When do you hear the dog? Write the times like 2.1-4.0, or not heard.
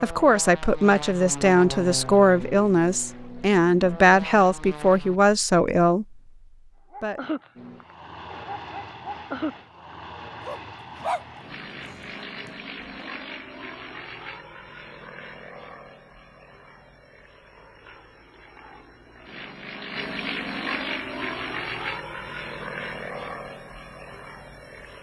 6.9-12.8.